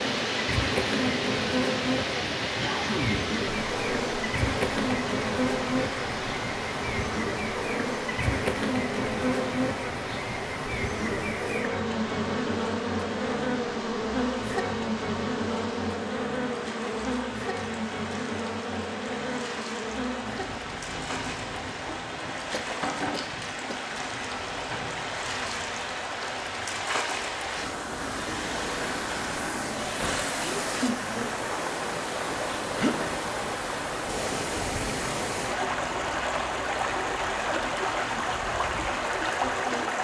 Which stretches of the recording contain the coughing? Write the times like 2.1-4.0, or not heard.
2.6-3.2, 22.5-23.8, 30.4-31.0.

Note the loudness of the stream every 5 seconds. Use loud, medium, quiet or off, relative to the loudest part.
loud, medium, medium, medium, medium, loud, loud, loud.